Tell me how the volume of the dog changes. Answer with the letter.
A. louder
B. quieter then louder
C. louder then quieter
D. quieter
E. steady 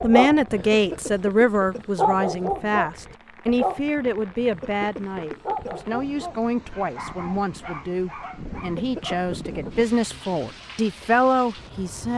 D.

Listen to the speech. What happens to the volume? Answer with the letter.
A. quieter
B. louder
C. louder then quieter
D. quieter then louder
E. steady
D.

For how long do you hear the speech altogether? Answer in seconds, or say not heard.
12 s.